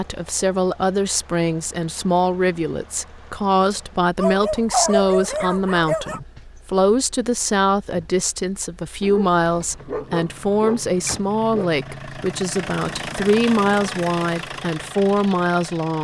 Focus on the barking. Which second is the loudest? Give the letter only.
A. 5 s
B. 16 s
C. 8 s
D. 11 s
A.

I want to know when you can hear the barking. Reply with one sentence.
The barking can be heard from 4.2 to 6.2 s and from 9.0 to 11.7 s.